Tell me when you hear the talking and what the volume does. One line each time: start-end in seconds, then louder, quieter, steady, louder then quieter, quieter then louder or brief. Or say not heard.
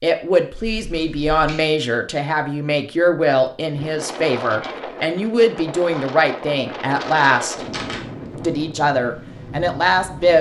0.0-7.5 steady
8.4-10.3 brief.